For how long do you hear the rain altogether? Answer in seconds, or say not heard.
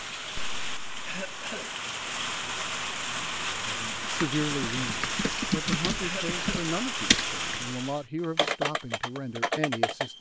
8 s.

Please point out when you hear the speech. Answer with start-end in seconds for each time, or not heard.
3.6-10.1.